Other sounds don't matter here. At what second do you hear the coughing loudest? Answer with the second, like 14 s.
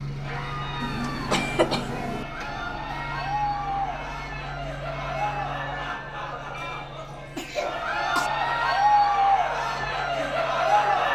1 s.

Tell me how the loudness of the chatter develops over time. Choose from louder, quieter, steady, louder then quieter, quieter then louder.
louder.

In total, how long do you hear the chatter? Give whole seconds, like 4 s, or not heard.
11 s.